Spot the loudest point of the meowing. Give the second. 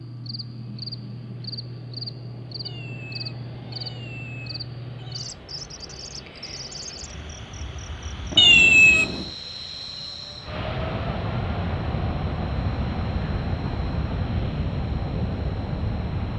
9 s.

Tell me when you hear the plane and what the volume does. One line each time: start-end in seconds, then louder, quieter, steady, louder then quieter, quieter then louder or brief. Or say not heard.
0.0-16.3 louder.